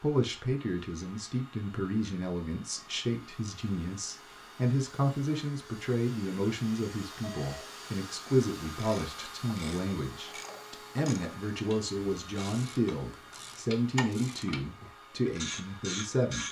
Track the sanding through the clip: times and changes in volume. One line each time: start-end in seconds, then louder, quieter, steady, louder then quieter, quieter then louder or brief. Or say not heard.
not heard.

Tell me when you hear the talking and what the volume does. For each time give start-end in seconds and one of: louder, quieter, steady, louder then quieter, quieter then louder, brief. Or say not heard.
0.0-16.4 steady.